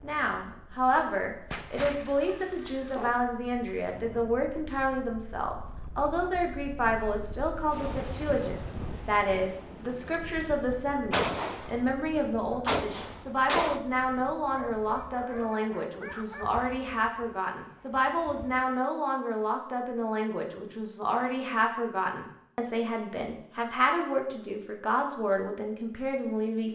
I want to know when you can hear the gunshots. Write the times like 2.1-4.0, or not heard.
11.1-13.8.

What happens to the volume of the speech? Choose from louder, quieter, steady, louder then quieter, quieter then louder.
steady.